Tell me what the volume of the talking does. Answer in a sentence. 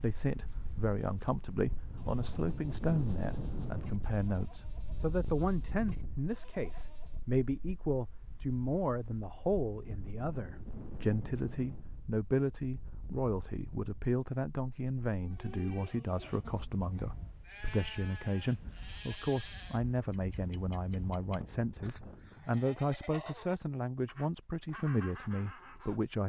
The loudness of the talking stays about the same.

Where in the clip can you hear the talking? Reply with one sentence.
You can hear the talking from 0.0 to 26.2 s.